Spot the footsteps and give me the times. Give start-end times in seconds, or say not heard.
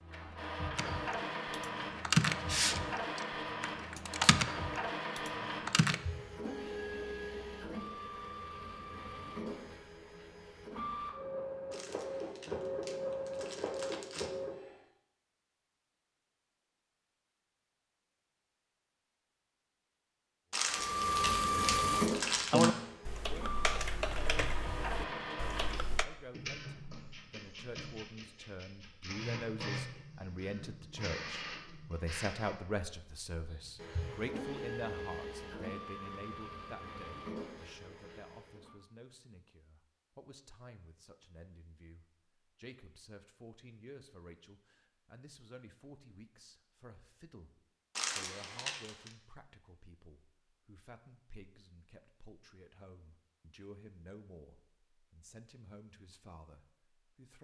not heard.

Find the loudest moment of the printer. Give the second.
22 s.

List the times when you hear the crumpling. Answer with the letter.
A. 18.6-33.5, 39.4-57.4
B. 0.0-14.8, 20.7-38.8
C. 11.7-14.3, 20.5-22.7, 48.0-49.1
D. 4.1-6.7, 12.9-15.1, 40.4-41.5
C.